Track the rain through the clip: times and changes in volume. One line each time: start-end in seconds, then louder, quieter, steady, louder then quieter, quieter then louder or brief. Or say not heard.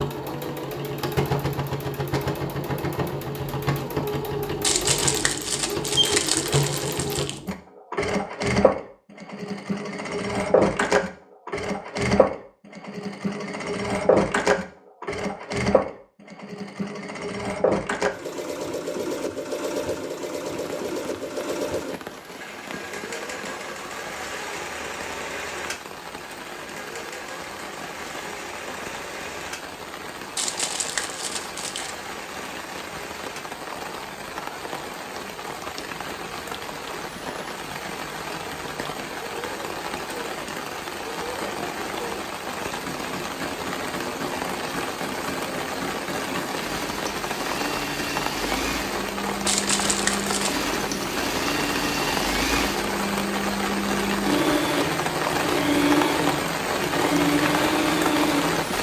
20.5-58.7 louder.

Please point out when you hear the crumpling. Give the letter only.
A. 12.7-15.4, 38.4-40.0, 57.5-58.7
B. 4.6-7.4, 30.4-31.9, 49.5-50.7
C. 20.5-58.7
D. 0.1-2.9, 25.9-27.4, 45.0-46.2
B.